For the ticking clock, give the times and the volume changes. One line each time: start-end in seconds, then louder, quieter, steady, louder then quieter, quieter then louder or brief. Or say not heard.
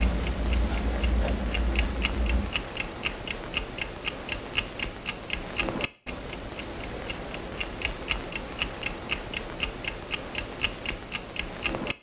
0.0-11.9 steady.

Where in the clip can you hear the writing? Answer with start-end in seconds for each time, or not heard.
0.0-2.5.